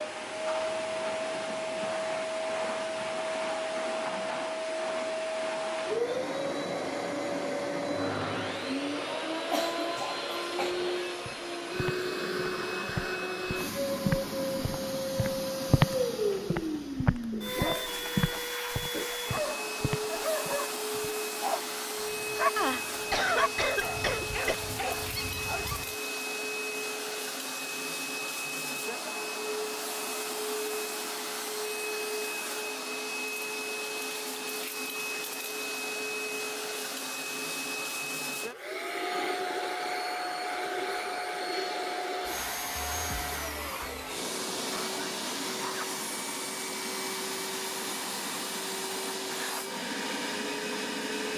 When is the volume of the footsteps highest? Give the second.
16 s.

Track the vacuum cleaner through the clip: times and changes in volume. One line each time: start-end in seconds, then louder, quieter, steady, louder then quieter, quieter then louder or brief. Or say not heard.
0.0-51.3 steady.